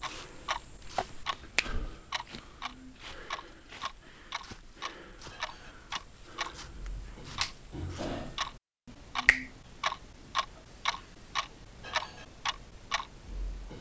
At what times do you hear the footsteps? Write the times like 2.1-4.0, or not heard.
0.0-8.3.